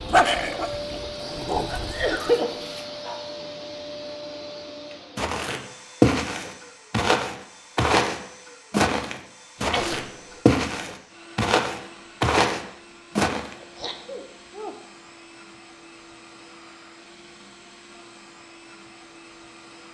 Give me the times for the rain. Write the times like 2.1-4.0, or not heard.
not heard.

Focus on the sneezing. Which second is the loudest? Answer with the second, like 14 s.
2 s.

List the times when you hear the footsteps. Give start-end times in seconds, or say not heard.
5.2-13.6.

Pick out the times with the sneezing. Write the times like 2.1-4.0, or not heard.
1.6-2.5, 9.6-10.4, 13.6-14.8.